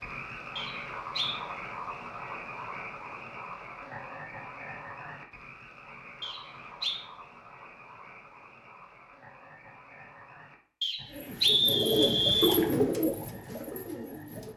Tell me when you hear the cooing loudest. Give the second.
13 s.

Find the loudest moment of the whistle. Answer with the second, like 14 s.
12 s.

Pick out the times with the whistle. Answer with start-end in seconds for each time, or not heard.
0.6-1.4, 6.2-7.0, 10.8-12.6.